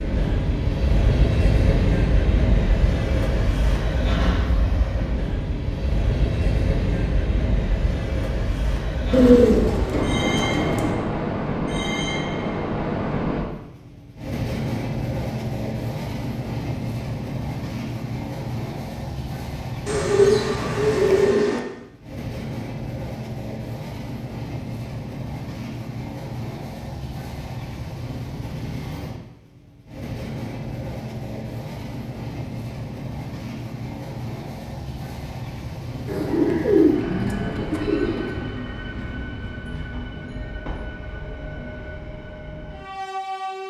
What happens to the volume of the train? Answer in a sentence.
The loudness of the train goes down.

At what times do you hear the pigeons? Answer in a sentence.
The pigeons can be heard from 9.1 to 10.9 s, from 19.9 to 21.6 s and from 36.0 to 38.5 s.